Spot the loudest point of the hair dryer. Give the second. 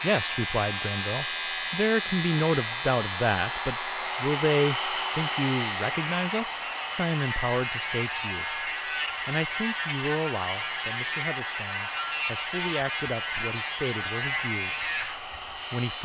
5 s.